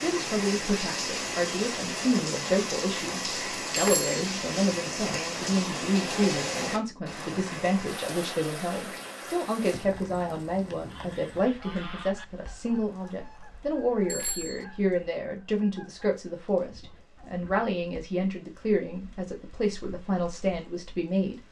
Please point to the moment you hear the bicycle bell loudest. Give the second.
4 s.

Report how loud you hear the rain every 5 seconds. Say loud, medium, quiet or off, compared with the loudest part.
loud, loud, quiet, quiet, quiet.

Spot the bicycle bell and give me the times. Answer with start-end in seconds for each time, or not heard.
3.8-4.2, 14.1-14.7.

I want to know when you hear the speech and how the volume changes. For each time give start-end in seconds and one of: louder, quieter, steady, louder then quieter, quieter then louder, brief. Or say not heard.
0.0-21.4 steady.